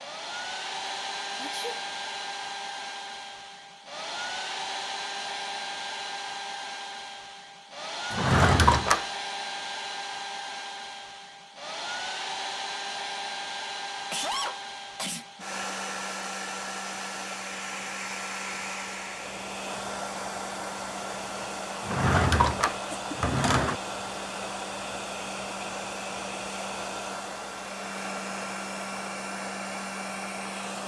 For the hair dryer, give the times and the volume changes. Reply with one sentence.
You can hear the hair dryer from 0.0 to 30.8 s, at a steady volume.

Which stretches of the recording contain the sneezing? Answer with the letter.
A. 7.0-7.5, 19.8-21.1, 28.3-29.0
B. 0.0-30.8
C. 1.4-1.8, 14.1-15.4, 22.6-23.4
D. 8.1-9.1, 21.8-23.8
C.